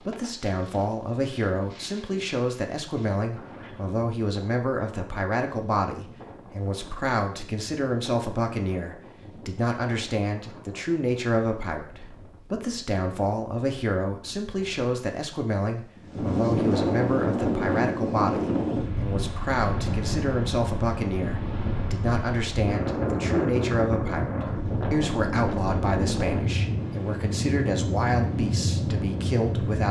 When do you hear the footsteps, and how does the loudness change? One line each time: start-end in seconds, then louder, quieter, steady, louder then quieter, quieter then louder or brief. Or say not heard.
not heard.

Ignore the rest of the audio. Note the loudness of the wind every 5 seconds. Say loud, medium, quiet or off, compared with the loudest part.
quiet, quiet, quiet, loud, loud, loud.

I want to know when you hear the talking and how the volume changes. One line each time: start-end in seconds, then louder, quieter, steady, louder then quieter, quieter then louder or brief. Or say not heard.
0.0-29.8 steady.